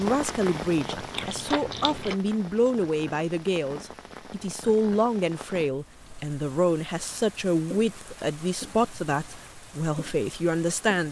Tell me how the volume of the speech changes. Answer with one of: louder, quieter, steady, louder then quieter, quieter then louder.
steady.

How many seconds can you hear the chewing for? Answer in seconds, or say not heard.
2 s.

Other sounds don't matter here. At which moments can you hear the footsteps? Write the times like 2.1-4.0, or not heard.
not heard.